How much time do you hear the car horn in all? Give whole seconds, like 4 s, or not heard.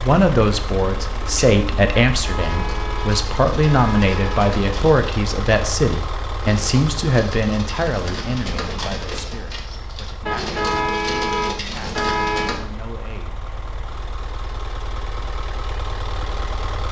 5 s.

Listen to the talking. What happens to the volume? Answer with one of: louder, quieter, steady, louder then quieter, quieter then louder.
quieter.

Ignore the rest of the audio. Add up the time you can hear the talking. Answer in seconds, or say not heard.
13 s.